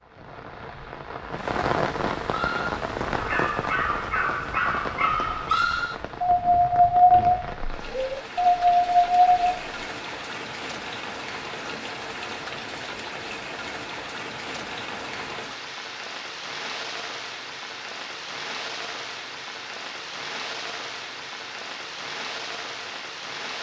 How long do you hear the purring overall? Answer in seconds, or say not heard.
not heard.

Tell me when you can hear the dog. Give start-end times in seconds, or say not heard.
2.2-9.6.